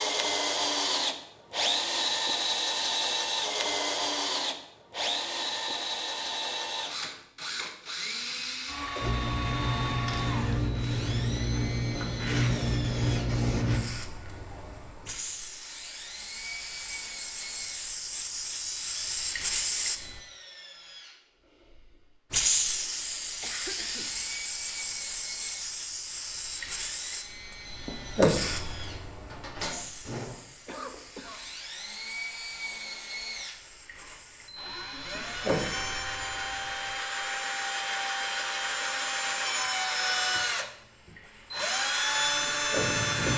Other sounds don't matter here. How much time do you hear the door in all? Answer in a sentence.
You can hear the door for 2 seconds altogether.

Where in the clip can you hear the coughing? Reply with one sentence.
The coughing can be heard from 8.8 to 9.2 s, from 23.4 to 24.1 s and from 30.6 to 31.4 s.